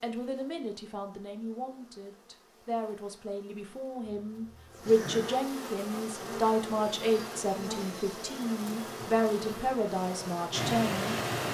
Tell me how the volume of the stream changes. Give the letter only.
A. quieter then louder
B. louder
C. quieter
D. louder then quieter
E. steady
B.